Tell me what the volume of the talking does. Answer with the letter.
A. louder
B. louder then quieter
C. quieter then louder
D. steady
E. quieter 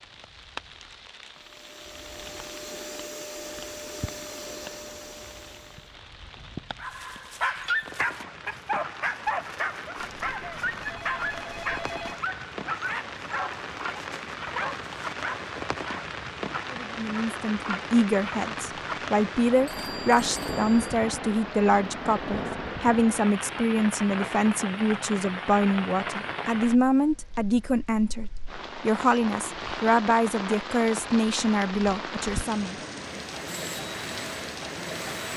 D.